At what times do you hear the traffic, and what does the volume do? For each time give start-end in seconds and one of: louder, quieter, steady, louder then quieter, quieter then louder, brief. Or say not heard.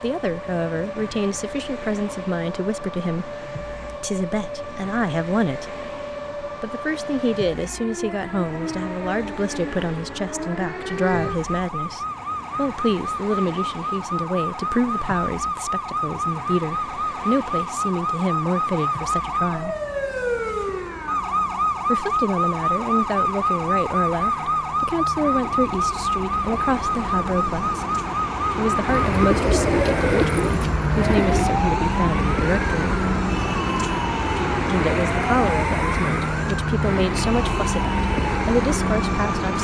0.0-39.5 louder.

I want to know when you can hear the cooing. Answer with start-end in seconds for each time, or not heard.
28.9-31.6.